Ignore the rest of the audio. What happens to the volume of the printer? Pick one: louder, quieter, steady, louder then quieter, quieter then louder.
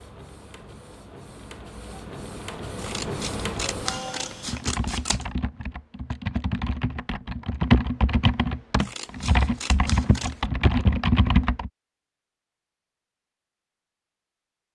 louder.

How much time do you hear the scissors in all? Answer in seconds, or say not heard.
4 s.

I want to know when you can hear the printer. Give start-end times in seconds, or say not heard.
0.0-4.7.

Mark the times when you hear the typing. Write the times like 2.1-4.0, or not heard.
4.5-11.7.